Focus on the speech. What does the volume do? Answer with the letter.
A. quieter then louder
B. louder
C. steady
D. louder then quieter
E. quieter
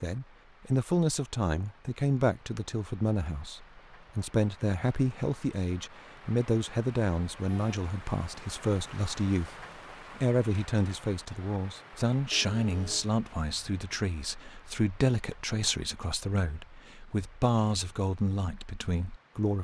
C.